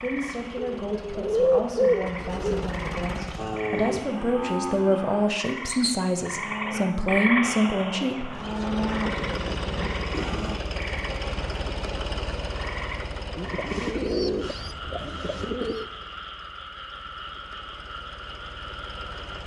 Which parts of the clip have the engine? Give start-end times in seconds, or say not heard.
0.0-3.7, 8.3-19.4.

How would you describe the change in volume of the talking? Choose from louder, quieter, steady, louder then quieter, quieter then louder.
louder.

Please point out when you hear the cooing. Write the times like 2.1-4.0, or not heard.
0.6-2.8, 13.3-15.8.